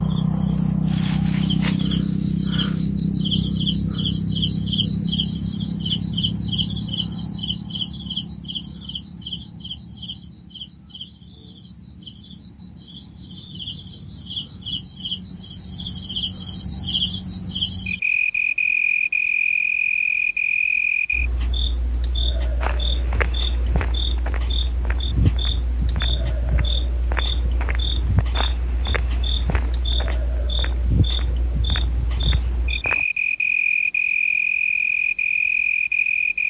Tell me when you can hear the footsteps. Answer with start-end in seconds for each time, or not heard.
22.6-33.0.